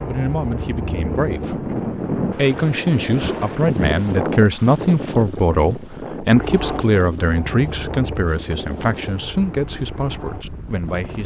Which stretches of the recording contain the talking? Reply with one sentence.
The talking can be heard from 0.1 to 11.2 s.